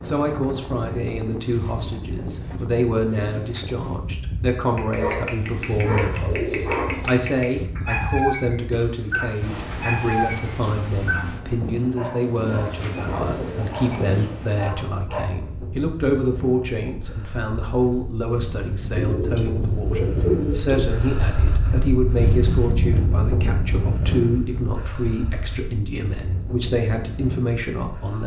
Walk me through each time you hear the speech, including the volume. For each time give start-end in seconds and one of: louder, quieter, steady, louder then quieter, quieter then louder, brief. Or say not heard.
0.0-28.2 steady.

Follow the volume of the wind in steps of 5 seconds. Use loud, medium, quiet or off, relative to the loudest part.
medium, medium, medium, medium, loud, medium.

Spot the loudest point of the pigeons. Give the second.
20 s.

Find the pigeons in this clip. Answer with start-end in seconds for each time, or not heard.
5.5-7.3, 12.3-14.4, 18.9-20.8.